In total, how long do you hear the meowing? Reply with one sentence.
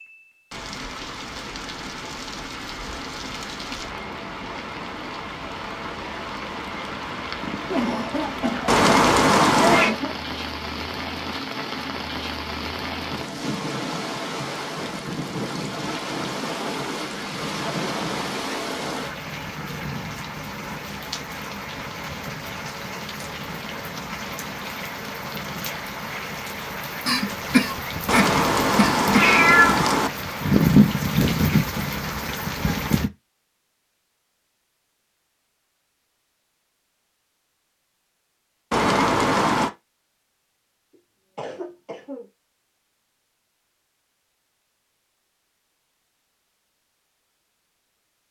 The meowing can be heard for 4 seconds in total.